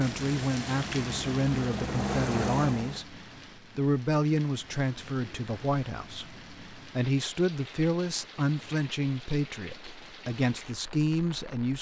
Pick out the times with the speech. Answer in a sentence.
You can hear the speech from 0.0 to 3.1 s and from 3.8 to 11.7 s.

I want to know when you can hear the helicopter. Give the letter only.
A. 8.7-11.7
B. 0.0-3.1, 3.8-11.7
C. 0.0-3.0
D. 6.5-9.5
C.